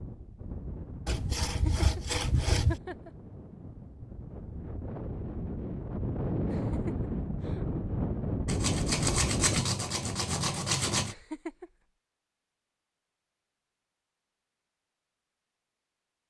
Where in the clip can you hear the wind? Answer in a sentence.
You can hear the wind from 0.0 to 9.7 s.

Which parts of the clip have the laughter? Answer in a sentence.
You can hear the laughter from 1.4 to 3.1 s, from 6.5 to 7.7 s and from 11.1 to 11.7 s.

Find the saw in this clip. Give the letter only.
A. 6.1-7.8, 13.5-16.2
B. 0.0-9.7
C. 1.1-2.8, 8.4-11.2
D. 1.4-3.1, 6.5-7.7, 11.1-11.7
C.